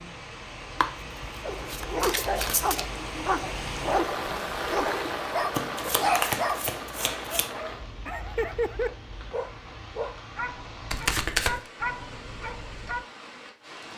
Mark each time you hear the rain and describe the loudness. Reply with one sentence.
You can hear the rain from 0.0 to 13.9 s, getting louder then quieter.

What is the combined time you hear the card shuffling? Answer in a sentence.
The card shuffling can be heard for 5 seconds in total.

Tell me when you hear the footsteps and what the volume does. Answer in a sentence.
You can't hear the footsteps here.